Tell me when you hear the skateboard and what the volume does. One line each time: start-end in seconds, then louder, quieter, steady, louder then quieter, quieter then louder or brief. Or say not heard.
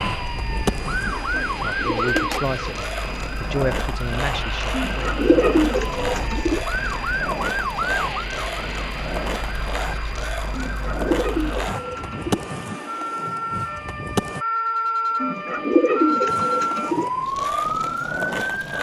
0.0-14.4 steady
16.2-18.7 brief.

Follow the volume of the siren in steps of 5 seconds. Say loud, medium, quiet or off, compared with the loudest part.
medium, medium, medium, loud.